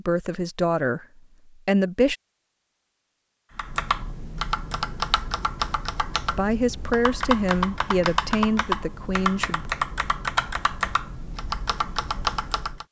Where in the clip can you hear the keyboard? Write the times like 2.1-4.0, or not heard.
3.5-12.8.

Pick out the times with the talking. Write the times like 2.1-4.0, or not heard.
0.0-2.1, 6.3-9.7.